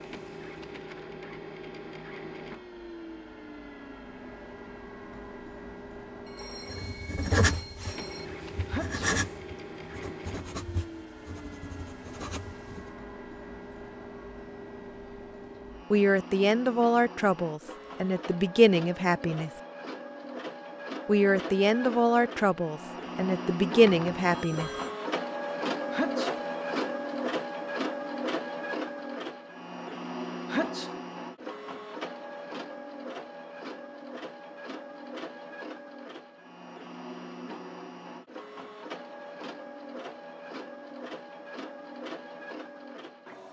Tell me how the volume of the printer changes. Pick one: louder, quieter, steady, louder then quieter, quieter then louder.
louder then quieter.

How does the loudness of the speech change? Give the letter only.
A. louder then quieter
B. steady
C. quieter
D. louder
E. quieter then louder
B.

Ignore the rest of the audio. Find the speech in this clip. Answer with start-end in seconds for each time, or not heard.
15.9-19.6, 21.1-24.8.